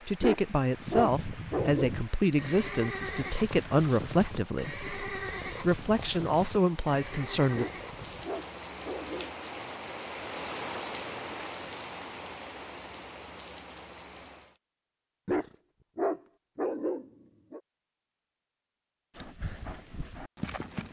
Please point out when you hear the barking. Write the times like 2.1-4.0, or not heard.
0.2-1.9, 7.5-9.3, 15.2-17.6.